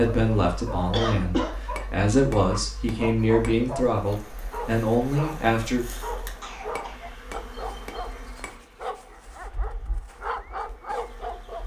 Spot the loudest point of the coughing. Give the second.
1 s.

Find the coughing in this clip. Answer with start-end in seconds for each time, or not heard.
0.9-1.6, 6.4-7.1.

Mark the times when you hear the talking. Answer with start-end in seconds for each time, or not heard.
0.0-5.8.